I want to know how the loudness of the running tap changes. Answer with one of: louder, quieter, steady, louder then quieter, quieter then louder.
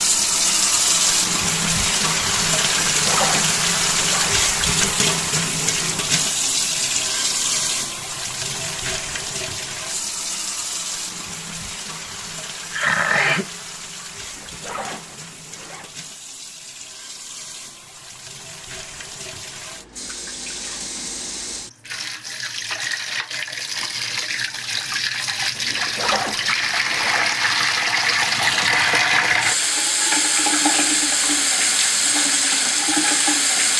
quieter then louder.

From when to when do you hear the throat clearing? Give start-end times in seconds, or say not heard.
12.7-13.5.